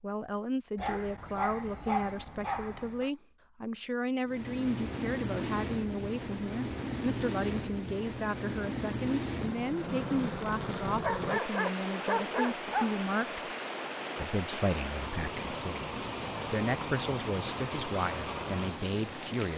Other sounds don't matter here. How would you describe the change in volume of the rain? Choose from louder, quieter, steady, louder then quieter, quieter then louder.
steady.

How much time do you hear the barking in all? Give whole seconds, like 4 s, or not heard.
4 s.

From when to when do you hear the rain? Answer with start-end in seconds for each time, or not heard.
4.2-19.5.